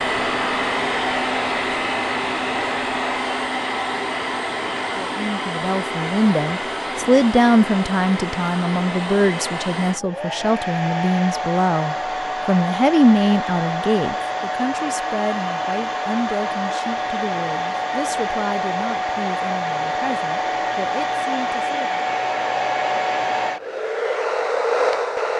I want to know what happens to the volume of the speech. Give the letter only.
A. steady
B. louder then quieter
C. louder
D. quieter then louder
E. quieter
E.